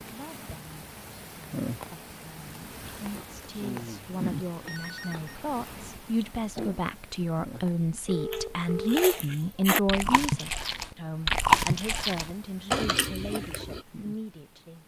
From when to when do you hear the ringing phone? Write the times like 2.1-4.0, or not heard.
4.7-5.3, 8.1-9.1.